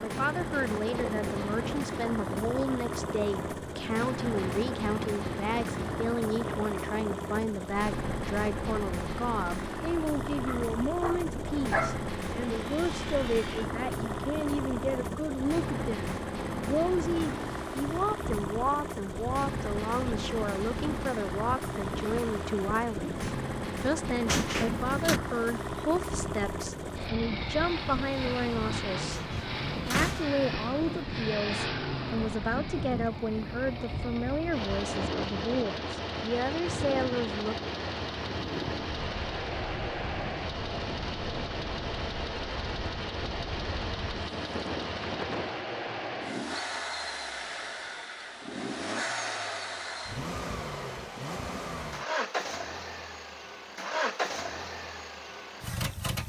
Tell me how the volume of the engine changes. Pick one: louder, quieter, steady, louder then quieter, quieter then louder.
steady.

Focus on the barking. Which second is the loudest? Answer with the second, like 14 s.
12 s.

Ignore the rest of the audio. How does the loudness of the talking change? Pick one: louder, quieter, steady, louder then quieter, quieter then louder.
steady.